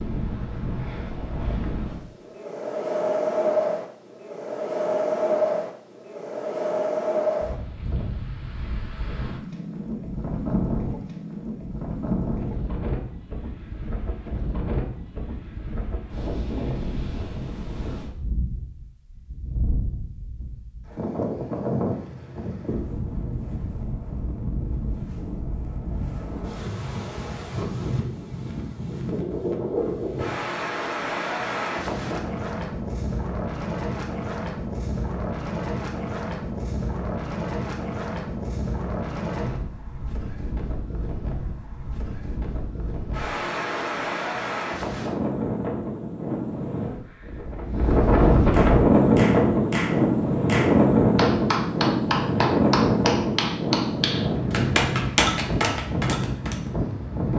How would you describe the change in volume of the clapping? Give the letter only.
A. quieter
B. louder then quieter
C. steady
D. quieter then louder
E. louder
E.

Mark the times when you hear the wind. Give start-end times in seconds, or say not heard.
0.0-57.3.